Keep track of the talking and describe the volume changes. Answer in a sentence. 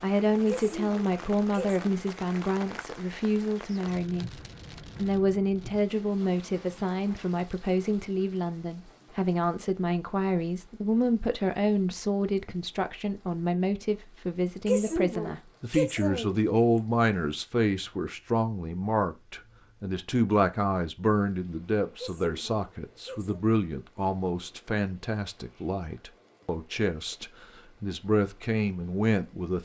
The volume of the talking stays about the same.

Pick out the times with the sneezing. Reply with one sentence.
The sneezing can be heard from 0.5 to 1.9 s, from 14.7 to 16.4 s and from 21.9 to 23.4 s.